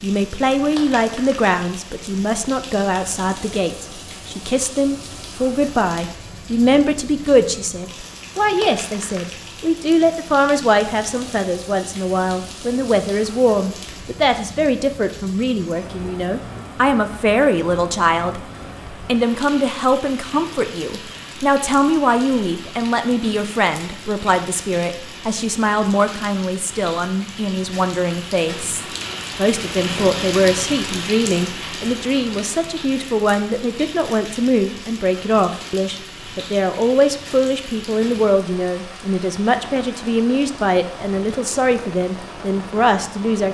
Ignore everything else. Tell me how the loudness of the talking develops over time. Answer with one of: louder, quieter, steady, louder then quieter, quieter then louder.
steady.